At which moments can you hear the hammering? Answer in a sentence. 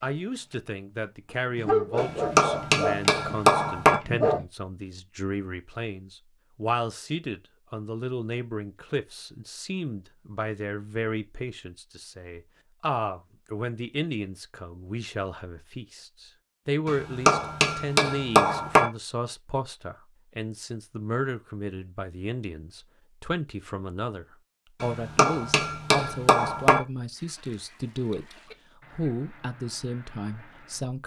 The hammering can be heard from 1.9 to 4.0 s, from 16.9 to 18.9 s and from 24.8 to 26.8 s.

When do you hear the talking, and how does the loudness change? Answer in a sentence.
You can hear the talking from 0.0 to 28.3 s, at a steady volume; and briefly from 28.9 to 31.0 s.